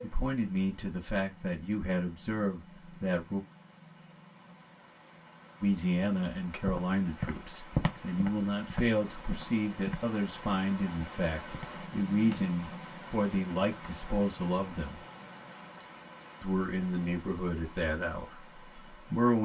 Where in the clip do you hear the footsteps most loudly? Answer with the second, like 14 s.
8 s.